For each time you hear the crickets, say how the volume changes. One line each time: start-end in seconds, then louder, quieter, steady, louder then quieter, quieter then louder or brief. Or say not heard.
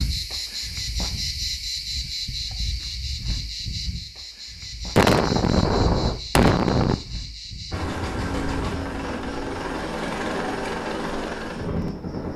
0.0-12.3 quieter.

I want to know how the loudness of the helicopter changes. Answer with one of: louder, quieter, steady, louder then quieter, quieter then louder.
steady.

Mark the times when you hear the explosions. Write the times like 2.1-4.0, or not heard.
5.0-7.0.